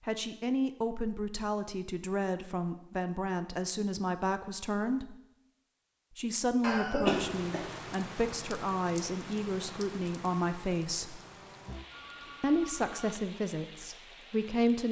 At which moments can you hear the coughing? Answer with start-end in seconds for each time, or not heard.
6.6-7.7.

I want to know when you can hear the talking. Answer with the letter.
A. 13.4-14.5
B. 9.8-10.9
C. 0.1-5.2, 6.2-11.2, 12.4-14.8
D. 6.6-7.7
C.